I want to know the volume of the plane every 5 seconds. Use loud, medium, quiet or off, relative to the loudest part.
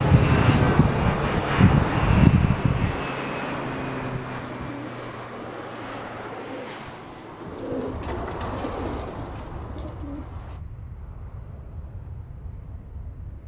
loud, quiet, quiet.